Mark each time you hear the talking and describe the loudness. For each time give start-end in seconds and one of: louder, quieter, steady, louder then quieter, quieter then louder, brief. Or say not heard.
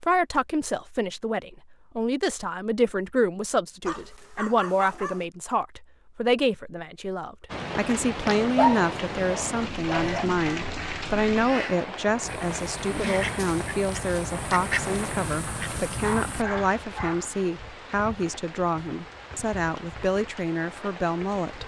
0.0-21.6 steady.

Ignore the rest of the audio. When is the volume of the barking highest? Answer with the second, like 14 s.
9 s.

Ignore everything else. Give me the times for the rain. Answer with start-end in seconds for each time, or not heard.
7.5-21.6.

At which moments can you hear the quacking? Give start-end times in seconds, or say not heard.
9.9-16.4.